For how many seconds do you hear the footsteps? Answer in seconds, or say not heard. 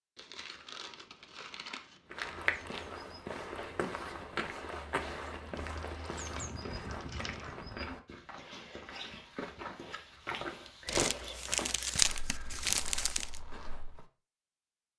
12 s.